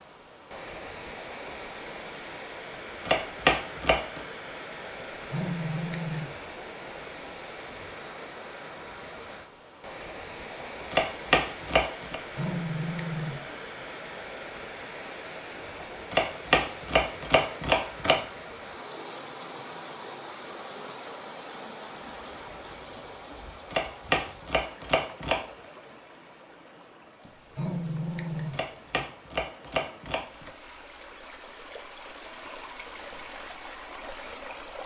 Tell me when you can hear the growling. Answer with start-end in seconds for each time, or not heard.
5.1-6.3, 12.2-13.6, 27.2-29.1.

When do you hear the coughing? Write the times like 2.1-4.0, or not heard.
not heard.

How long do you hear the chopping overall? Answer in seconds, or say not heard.
8 s.